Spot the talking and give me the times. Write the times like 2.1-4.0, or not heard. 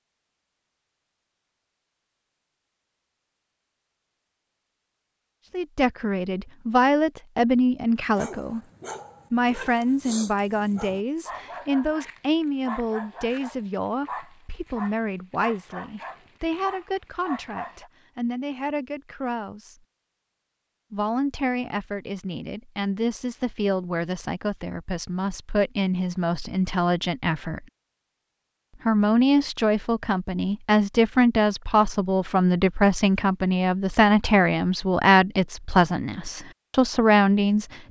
5.5-8.6, 9.3-19.8, 20.9-27.6, 28.9-37.8.